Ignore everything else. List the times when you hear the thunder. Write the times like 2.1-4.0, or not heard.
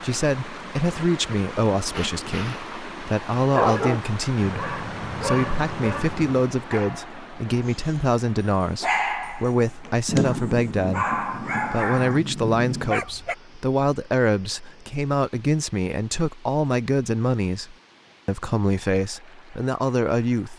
10.1-12.9.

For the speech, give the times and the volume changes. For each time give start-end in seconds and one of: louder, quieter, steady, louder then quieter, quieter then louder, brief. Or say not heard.
0.0-20.5 steady.